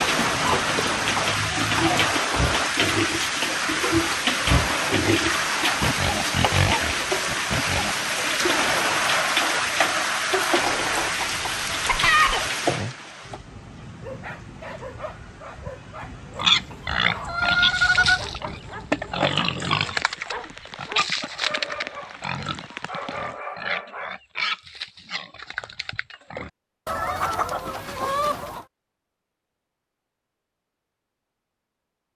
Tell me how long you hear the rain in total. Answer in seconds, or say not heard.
23 s.